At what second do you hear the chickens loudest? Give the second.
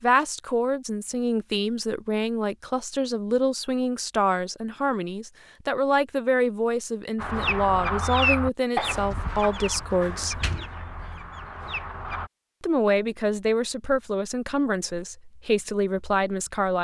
8 s.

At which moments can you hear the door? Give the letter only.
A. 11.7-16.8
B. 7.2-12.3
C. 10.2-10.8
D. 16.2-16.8
C.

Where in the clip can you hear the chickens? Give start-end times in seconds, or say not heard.
7.2-12.3.